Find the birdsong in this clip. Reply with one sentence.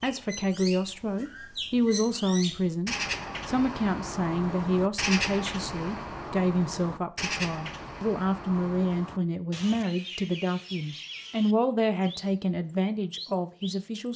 You can hear the birdsong from 0.0 to 13.8 s.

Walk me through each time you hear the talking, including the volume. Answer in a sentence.
You can hear the talking from 0.0 to 14.1 s, at a steady volume.